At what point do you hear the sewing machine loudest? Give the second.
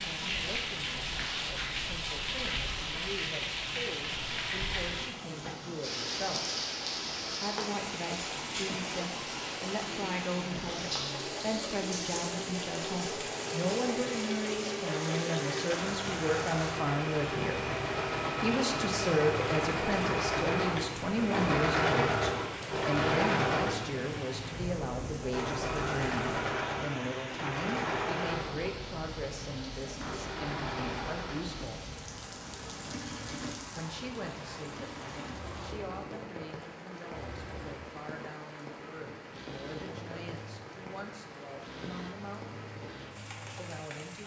22 s.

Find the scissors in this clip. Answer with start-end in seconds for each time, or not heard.
not heard.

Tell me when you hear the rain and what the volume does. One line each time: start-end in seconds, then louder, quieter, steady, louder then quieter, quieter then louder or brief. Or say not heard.
0.0-44.2 quieter.